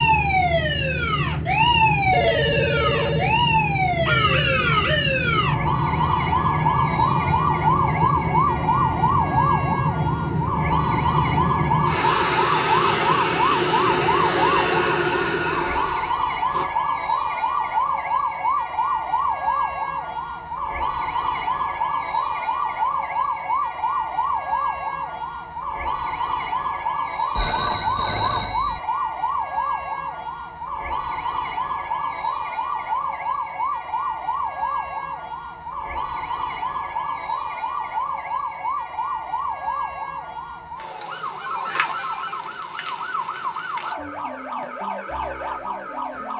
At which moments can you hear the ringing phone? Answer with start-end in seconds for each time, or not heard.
2.1-3.4, 27.4-28.8, 41.5-42.5.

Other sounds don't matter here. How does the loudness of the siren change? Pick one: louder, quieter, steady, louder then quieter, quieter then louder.
quieter.